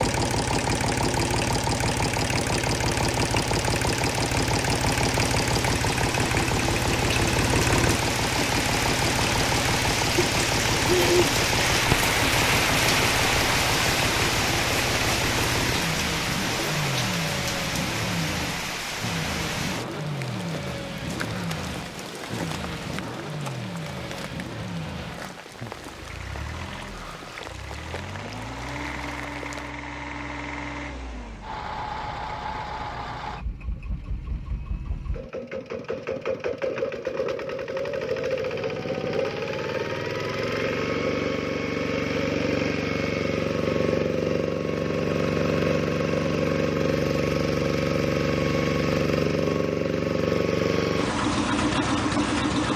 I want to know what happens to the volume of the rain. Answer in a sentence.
The loudness of the rain goes up, then down.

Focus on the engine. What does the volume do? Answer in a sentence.
The volume of the engine goes down, then up.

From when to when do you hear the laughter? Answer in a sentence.
The laughter can't be heard in this clip.